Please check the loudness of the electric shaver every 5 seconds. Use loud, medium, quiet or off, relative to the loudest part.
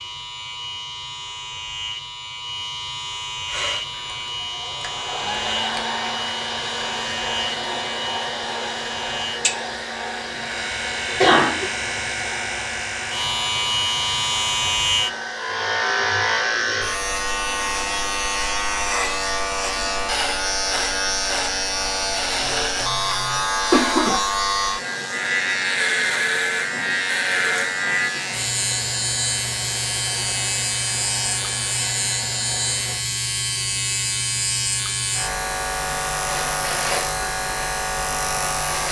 medium, medium, loud, loud, loud, loud, loud, loud.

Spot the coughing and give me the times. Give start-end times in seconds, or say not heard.
11.1-11.7, 22.9-24.2.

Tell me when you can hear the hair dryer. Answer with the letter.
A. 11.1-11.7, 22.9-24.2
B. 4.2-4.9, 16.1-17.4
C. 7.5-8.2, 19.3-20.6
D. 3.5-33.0
D.